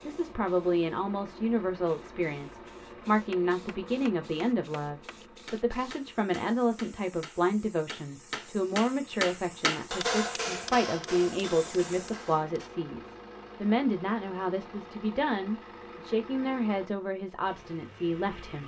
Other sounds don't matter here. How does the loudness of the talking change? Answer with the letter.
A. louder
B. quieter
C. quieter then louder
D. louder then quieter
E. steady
E.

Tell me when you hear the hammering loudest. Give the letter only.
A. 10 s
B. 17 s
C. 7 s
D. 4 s
A.